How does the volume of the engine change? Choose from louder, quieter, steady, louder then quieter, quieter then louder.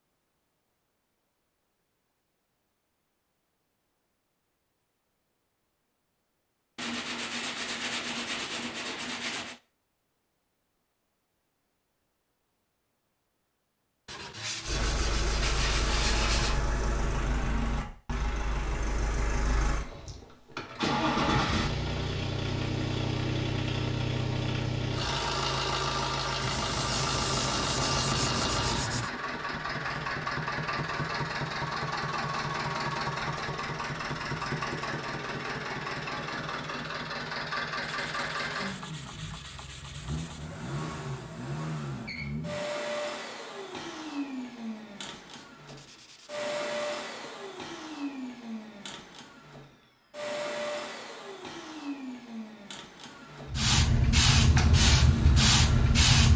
quieter.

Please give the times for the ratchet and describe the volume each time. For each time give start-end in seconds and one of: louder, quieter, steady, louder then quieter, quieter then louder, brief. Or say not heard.
not heard.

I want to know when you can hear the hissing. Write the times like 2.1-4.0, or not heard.
53.5-56.3.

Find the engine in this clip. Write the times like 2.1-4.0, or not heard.
14.7-56.3.